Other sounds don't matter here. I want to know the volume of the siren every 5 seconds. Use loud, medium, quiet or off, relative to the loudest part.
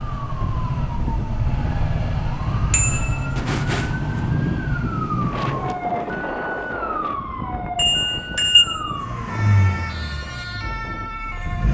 loud, loud, medium.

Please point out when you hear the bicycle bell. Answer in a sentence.
You can hear the bicycle bell from 2.7 to 3.2 s and from 7.8 to 8.7 s.